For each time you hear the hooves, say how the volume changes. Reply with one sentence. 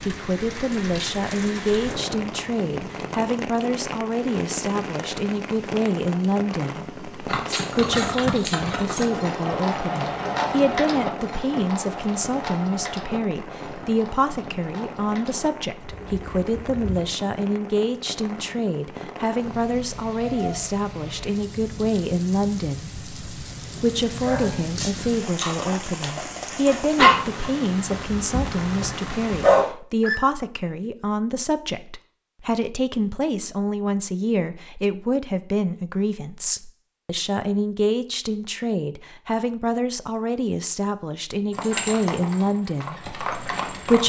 You can hear the hooves from 7.2 to 17.2 s, getting quieter; and briefly from 41.5 to 44.0 s.